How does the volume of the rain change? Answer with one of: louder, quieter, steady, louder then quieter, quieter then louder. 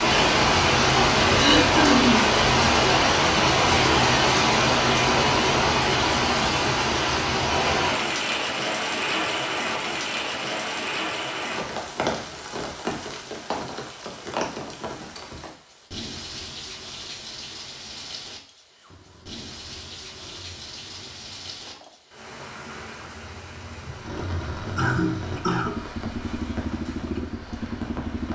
quieter.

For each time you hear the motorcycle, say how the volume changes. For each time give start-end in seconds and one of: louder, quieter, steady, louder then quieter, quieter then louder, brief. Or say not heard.
18.8-28.3 louder.